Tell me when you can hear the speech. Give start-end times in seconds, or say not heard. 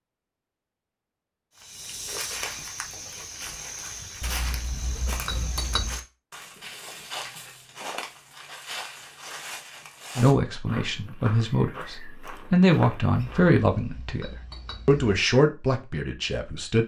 10.2-16.8.